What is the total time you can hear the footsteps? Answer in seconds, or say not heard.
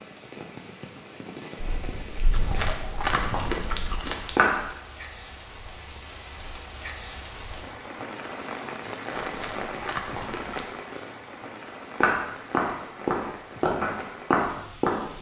6 s.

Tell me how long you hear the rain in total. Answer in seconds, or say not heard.
15 s.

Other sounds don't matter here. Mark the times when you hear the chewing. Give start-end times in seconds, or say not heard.
2.3-4.4, 9.1-10.8.